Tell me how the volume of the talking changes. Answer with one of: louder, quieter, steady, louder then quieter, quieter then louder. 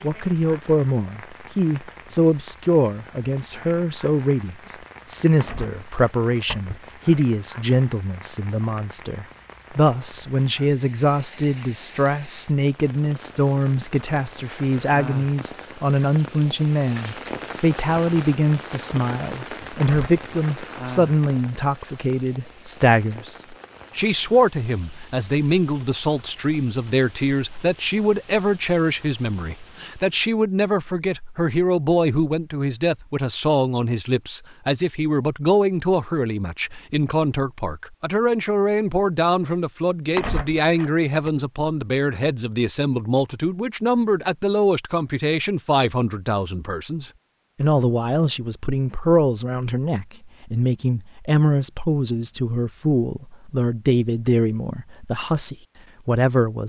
steady.